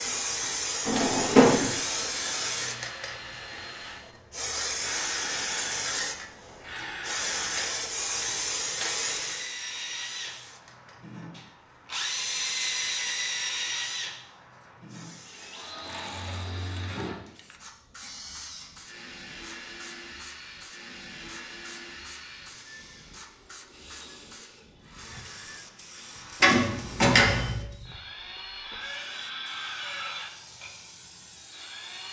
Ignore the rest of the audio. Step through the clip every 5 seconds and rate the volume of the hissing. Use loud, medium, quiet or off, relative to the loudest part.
loud, loud, quiet, quiet, quiet, quiet, quiet.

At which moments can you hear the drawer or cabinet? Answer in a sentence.
You can hear the drawer or cabinet from 0.8 to 1.7 s and from 26.4 to 27.6 s.